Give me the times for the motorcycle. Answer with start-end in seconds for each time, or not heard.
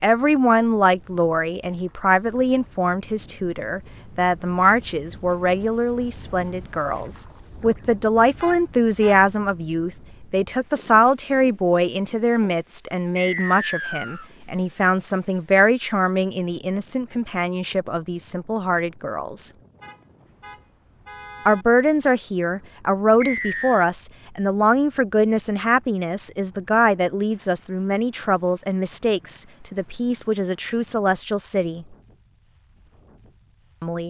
not heard.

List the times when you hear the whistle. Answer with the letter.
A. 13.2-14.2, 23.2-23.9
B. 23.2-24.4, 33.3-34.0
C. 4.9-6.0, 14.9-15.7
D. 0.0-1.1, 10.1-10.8
A.